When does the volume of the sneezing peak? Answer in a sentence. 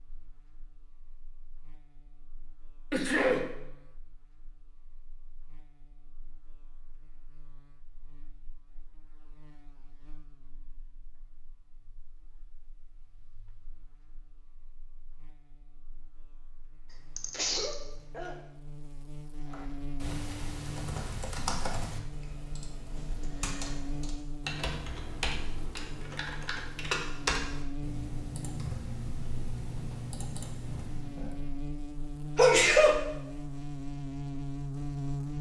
The volume of the sneezing peaks at 33 seconds.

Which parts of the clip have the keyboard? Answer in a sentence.
The keyboard can be heard from 19.5 to 31.4 s.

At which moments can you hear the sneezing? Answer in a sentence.
You can hear the sneezing from 2.9 to 3.5 s, from 17.1 to 18.4 s and from 32.4 to 33.0 s.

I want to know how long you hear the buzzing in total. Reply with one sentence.
You can hear the buzzing for 35 seconds altogether.